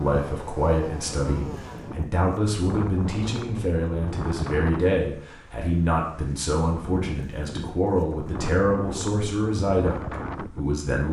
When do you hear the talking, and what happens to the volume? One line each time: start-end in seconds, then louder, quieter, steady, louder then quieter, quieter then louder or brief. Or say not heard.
0.0-11.0 steady.